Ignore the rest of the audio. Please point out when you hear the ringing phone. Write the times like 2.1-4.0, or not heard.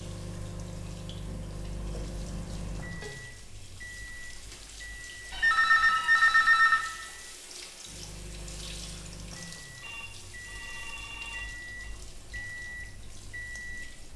1.8-3.1, 5.3-6.8, 9.8-11.9.